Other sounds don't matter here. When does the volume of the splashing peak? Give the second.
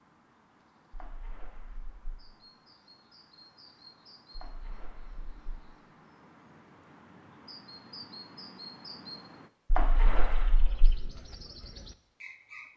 10 s.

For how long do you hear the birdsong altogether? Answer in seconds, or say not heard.
13 s.